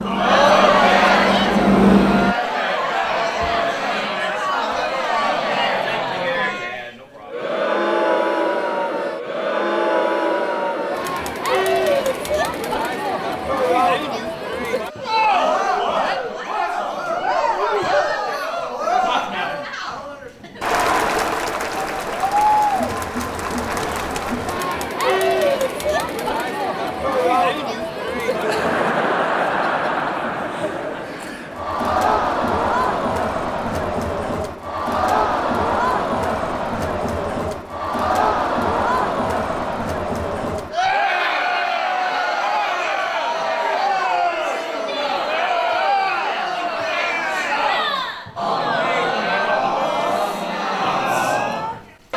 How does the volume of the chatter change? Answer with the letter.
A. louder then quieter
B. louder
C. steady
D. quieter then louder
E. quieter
C.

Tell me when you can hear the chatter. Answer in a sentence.
The chatter can be heard from 0.0 to 52.1 s.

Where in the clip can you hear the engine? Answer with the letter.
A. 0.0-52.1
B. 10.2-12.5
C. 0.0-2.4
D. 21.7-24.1
C.